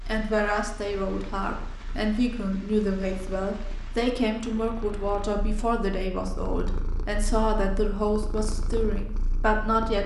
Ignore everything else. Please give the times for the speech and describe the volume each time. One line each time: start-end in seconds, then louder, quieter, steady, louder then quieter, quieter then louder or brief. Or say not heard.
0.1-10.0 steady.